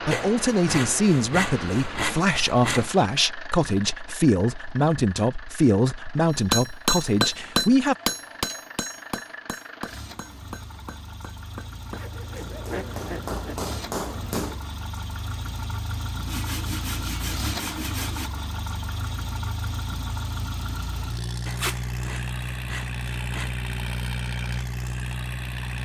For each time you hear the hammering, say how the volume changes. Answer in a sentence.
You can hear the hammering from 6.3 to 14.6 s, getting quieter then louder.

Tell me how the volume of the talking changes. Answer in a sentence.
The loudness of the talking stays about the same.